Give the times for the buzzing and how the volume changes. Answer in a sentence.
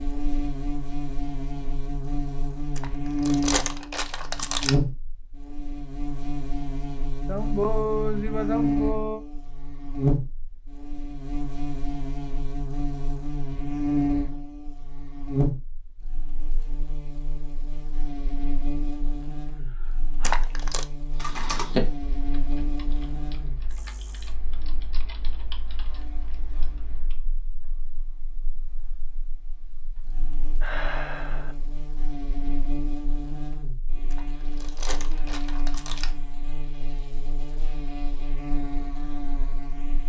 The buzzing can be heard from 0.0 to 40.0 s, getting quieter then louder.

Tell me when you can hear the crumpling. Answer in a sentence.
The crumpling can be heard from 2.8 to 4.8 s, from 20.2 to 20.9 s and from 34.1 to 36.1 s.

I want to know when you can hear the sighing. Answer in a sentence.
The sighing can be heard from 7.2 to 9.2 s, from 19.6 to 20.4 s and from 30.6 to 31.6 s.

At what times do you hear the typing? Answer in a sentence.
You can hear the typing from 21.1 to 27.2 s.